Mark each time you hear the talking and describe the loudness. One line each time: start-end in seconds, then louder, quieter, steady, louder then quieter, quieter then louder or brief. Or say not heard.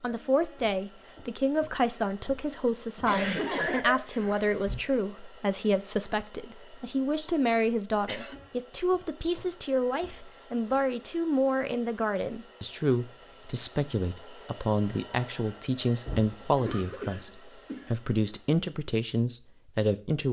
0.0-20.2 steady.